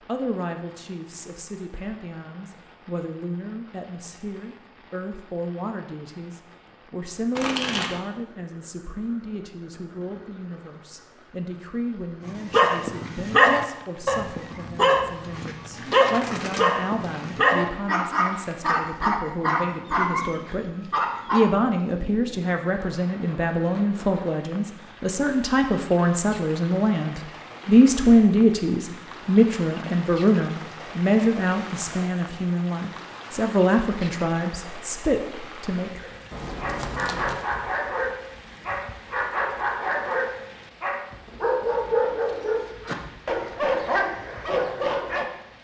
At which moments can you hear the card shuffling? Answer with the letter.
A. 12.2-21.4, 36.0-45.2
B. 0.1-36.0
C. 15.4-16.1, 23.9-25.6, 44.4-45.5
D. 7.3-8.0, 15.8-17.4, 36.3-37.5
D.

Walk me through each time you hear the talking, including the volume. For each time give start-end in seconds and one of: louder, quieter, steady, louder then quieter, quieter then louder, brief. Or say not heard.
0.1-36.0 louder.